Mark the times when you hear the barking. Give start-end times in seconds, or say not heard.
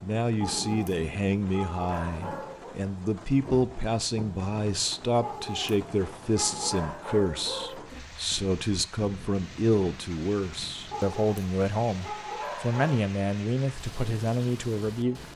0.4-2.8, 5.2-7.8, 10.9-13.1.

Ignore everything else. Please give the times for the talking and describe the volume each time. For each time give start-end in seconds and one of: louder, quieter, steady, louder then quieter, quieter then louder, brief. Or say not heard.
0.0-15.3 steady.